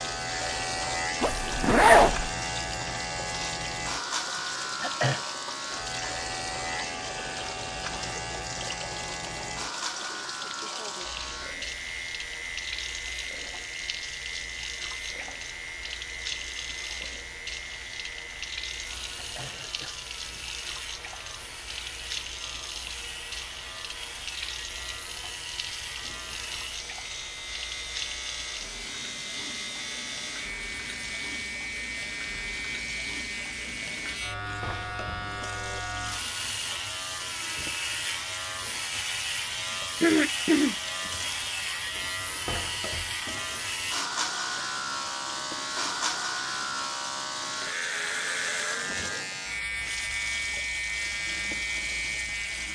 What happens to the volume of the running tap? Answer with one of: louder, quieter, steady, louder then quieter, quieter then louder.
steady.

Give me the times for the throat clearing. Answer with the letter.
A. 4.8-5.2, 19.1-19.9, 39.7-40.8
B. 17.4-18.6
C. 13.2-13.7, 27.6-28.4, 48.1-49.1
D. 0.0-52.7
A.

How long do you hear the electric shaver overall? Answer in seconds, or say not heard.
53 s.